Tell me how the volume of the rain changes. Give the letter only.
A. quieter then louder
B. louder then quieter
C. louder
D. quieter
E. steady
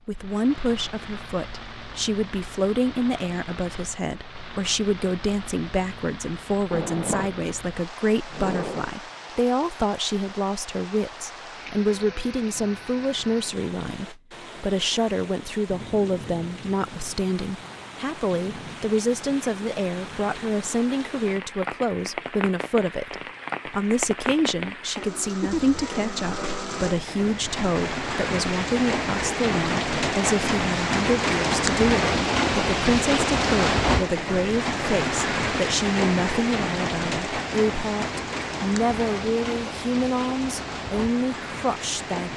C.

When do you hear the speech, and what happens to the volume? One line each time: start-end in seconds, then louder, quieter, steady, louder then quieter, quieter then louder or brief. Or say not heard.
0.1-42.3 steady.